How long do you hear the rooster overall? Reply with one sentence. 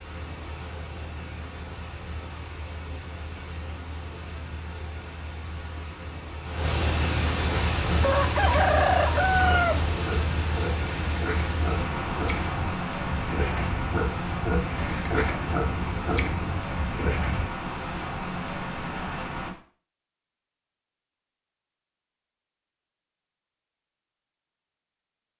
The rooster can be heard for 2 seconds in total.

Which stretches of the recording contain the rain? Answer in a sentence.
You can hear the rain from 0.0 to 19.6 s.